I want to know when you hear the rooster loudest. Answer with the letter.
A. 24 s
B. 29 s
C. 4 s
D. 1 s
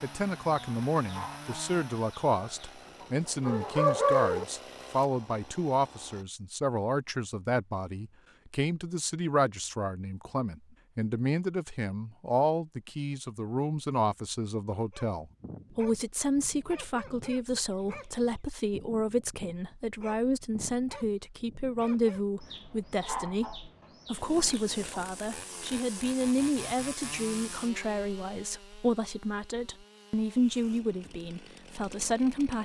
C.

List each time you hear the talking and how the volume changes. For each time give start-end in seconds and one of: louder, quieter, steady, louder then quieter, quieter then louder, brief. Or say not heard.
0.0-32.5 steady.